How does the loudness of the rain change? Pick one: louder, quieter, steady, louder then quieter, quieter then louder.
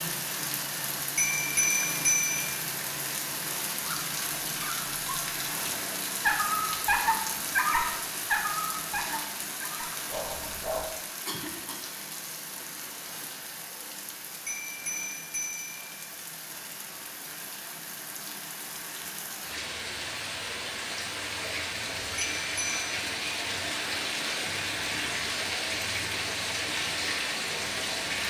quieter then louder.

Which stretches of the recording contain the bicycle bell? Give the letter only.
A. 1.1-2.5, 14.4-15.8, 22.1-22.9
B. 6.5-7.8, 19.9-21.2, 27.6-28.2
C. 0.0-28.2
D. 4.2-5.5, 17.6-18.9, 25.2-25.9
A.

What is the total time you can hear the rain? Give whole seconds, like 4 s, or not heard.
28 s.